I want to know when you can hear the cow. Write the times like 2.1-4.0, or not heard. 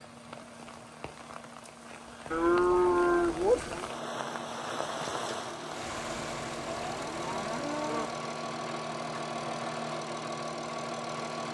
2.3-3.9, 6.8-8.1.